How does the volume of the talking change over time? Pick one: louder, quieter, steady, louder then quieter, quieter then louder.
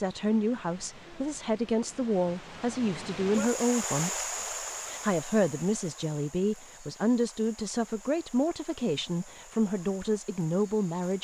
steady.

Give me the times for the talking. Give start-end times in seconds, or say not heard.
0.0-4.2, 4.8-11.1.